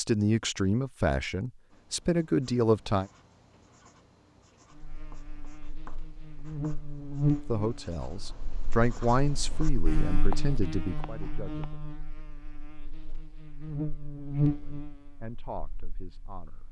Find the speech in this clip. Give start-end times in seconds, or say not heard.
0.0-3.0, 7.5-11.8, 14.2-16.6.